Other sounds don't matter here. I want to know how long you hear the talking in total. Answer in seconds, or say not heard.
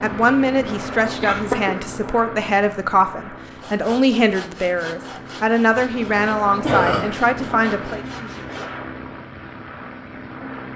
8 s.